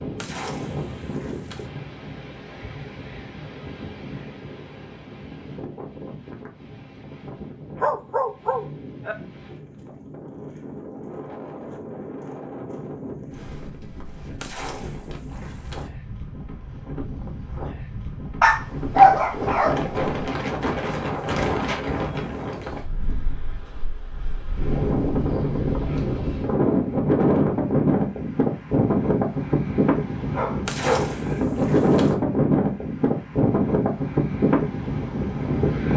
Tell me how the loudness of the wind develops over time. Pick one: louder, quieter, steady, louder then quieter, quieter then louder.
louder.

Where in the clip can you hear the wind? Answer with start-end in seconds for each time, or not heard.
0.0-35.9.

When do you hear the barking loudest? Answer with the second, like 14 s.
19 s.